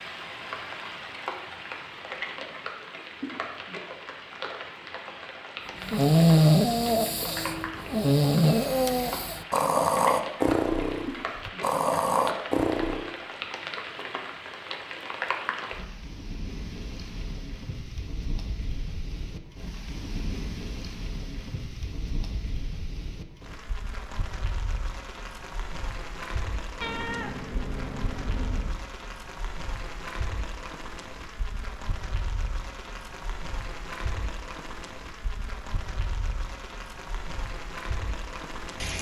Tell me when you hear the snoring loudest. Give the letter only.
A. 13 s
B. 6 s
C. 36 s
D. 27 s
B.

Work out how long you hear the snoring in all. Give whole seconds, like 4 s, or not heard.
7 s.